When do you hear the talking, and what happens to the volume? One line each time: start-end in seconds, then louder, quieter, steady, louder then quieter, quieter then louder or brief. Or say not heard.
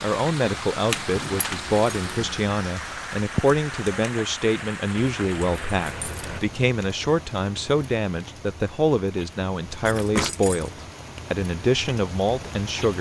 0.0-10.7 steady
11.3-12.9 brief.